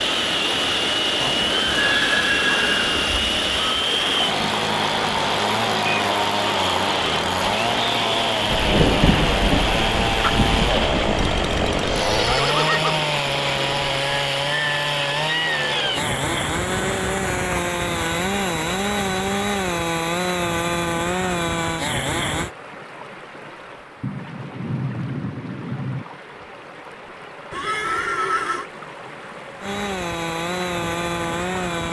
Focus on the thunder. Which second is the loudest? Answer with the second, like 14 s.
9 s.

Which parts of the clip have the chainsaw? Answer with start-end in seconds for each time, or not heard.
0.0-22.5, 29.6-31.8.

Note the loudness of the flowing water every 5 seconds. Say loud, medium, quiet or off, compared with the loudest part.
loud, loud, loud, medium, quiet, quiet, medium.